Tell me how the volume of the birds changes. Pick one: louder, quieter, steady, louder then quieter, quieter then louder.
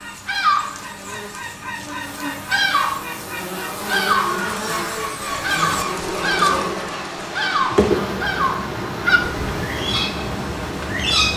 steady.